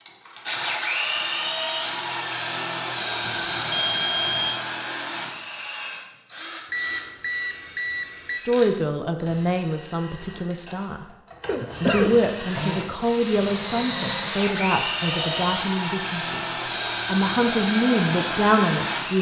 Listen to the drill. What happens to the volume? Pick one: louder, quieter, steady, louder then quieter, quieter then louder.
quieter then louder.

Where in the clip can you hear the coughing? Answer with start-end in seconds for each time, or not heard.
11.4-12.2.